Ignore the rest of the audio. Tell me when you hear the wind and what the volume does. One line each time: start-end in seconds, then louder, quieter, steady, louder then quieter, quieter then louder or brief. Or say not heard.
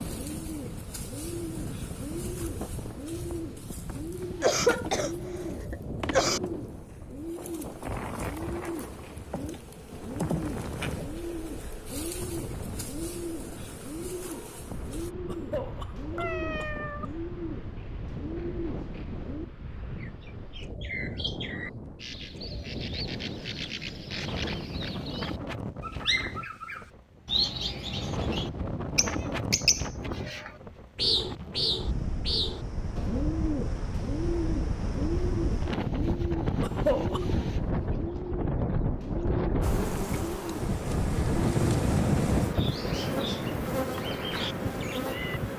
0.0-45.5 louder.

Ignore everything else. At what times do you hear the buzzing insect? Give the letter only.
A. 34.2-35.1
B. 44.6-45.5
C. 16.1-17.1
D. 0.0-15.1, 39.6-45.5
D.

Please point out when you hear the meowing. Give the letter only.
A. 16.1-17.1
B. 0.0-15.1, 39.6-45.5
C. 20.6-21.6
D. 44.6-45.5
A.